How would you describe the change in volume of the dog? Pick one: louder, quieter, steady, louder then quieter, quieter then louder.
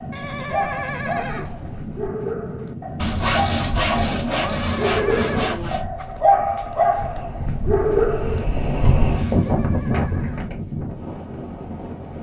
louder.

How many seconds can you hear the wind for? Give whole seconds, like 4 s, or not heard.
12 s.